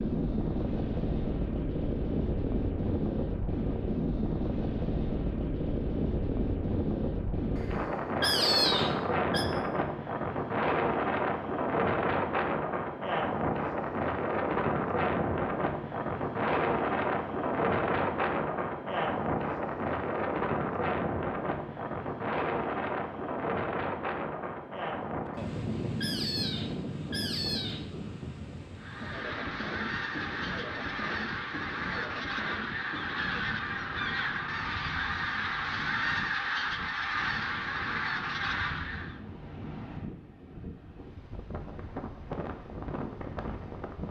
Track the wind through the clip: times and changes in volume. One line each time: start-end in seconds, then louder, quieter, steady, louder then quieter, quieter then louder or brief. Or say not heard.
0.0-44.0 quieter.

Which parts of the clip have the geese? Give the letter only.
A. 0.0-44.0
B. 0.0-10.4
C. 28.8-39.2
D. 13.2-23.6
C.